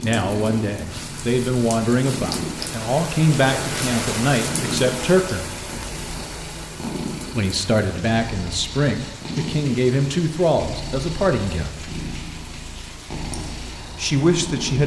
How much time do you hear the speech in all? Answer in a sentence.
The speech can be heard for 11 seconds in total.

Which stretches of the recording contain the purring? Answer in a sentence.
You can hear the purring from 0.0 to 14.8 s.